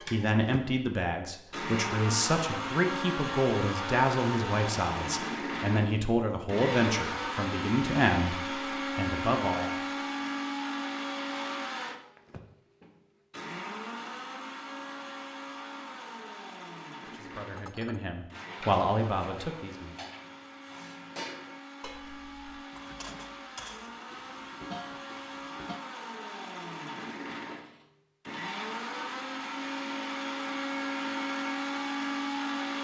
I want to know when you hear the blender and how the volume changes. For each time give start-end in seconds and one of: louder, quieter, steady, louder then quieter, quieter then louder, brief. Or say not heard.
0.0-32.7 quieter then louder.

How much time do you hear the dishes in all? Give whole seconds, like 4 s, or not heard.
8 s.